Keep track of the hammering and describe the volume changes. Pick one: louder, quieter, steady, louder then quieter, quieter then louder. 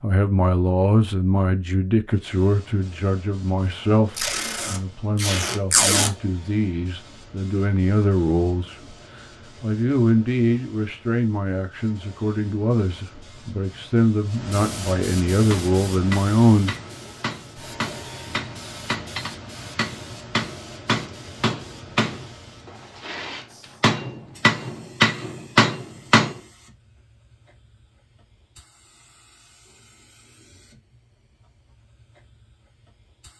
louder.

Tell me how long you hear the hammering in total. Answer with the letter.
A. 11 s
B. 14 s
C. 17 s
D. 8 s
A.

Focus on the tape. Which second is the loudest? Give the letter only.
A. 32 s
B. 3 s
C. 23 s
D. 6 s
D.